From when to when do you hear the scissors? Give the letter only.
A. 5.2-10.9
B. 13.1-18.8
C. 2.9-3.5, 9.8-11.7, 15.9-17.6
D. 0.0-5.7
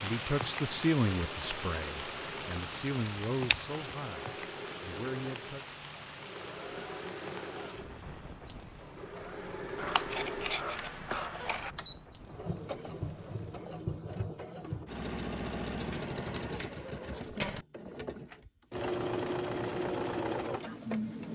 C.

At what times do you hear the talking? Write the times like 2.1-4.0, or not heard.
0.0-5.7.